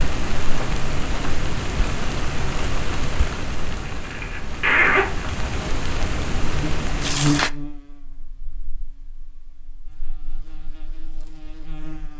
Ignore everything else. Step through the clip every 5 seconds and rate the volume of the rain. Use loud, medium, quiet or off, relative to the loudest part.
loud, loud, off.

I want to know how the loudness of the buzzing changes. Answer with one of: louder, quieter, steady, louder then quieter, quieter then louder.
quieter then louder.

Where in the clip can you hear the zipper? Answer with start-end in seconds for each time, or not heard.
3.9-5.4.